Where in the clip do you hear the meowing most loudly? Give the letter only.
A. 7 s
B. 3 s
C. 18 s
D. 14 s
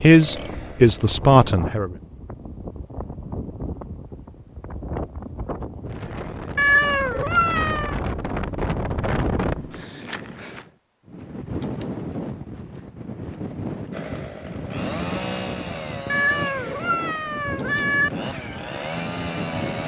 A.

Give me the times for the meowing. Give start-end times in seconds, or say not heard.
6.5-8.0, 16.1-18.1.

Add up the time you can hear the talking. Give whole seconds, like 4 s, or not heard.
2 s.